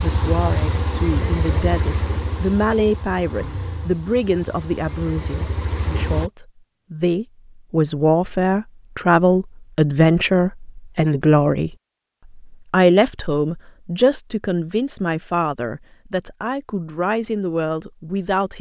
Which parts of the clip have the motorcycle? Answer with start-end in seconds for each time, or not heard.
0.0-6.3.